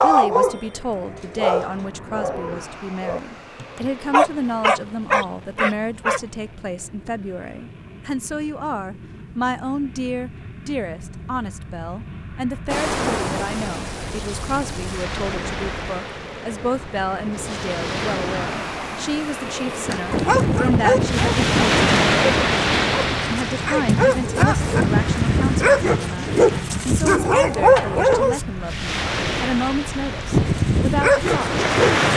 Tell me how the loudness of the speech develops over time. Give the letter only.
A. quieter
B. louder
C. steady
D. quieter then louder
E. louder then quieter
C.